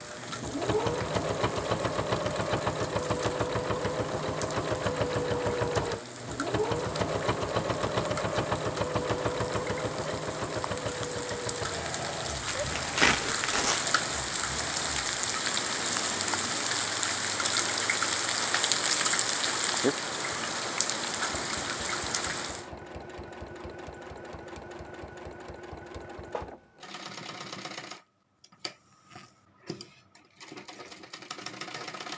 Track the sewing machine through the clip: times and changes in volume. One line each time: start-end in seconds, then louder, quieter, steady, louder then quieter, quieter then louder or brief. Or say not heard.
0.0-32.1 quieter.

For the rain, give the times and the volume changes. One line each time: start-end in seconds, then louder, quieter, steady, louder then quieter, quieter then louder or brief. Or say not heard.
0.0-22.6 louder.